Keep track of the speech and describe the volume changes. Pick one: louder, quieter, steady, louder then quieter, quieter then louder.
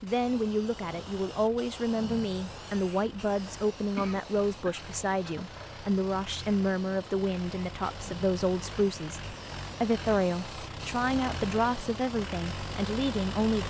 steady.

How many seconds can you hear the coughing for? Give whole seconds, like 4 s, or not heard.
2 s.